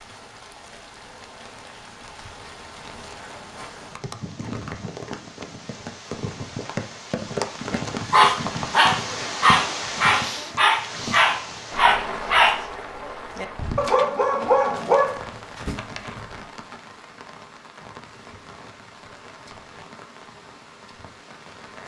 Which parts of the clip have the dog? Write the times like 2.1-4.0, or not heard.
7.7-16.1.